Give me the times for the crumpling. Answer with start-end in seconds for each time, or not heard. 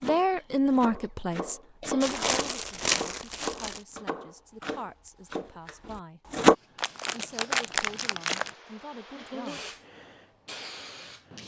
2.0-3.8, 6.8-8.5.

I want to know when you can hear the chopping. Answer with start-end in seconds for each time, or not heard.
0.0-6.5.